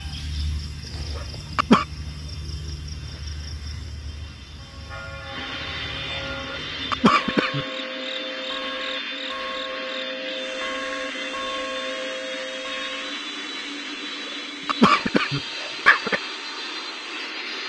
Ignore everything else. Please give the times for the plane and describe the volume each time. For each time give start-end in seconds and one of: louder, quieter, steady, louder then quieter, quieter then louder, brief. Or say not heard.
0.0-17.6 louder.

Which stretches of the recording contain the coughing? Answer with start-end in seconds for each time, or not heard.
1.1-1.9, 6.9-7.7, 14.7-16.2.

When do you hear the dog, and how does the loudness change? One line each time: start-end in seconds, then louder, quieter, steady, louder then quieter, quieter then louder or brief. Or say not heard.
not heard.